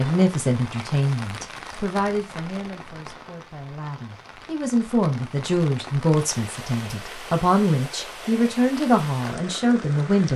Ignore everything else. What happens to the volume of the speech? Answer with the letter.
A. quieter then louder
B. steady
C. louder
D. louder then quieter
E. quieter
A.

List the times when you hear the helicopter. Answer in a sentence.
You can't hear the helicopter here.